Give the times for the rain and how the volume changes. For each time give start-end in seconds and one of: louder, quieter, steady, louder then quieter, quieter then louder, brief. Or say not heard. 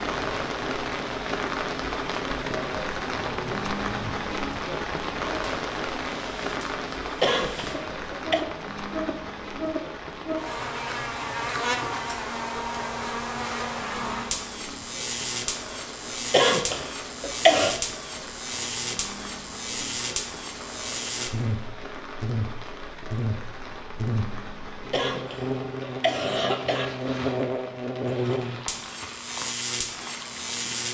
0.0-30.8 quieter.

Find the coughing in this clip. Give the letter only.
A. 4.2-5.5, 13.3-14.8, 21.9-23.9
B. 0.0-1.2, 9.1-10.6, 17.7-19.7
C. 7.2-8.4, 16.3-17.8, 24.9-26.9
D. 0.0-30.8
C.